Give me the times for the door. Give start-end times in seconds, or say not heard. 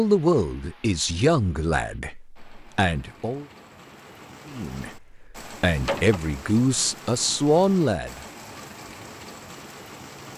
5.8-6.2.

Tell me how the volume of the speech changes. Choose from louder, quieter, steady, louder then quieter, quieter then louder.
quieter then louder.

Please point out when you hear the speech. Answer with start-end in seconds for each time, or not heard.
0.0-3.5, 4.5-8.2.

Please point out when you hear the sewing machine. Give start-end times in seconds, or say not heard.
not heard.